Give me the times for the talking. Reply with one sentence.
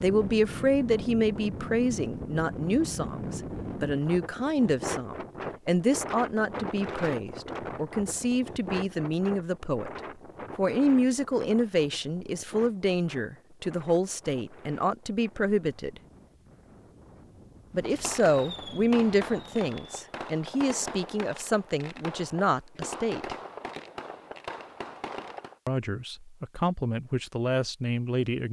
You can hear the talking from 0.0 to 9.9 s, from 10.6 to 16.0 s, from 17.7 to 23.4 s and from 25.6 to 28.4 s.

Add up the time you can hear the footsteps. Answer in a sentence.
The footsteps can't be heard in this clip.